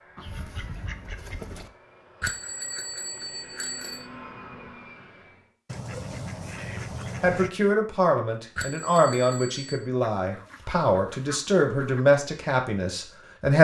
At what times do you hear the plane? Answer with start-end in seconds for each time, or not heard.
0.0-5.5.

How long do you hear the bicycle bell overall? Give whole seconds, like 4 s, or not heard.
3 s.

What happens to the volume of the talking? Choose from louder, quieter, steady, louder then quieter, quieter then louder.
steady.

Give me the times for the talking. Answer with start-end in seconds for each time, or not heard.
7.2-13.5.